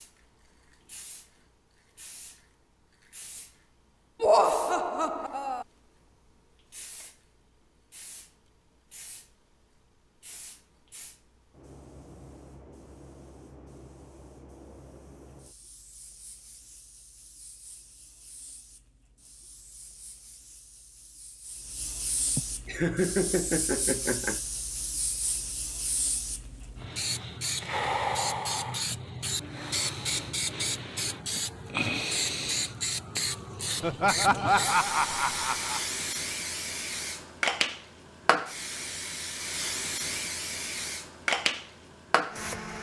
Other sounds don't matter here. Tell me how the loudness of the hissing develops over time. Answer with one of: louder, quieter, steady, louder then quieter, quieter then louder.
louder.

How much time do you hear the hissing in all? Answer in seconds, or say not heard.
43 s.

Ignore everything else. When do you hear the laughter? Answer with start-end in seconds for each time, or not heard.
4.2-5.7, 22.4-24.4, 33.8-35.8.